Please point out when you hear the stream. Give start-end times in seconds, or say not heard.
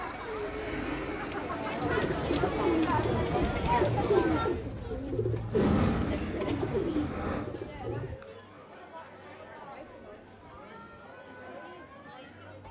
not heard.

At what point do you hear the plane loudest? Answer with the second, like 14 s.
6 s.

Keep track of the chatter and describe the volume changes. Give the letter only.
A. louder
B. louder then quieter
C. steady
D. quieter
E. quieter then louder
D.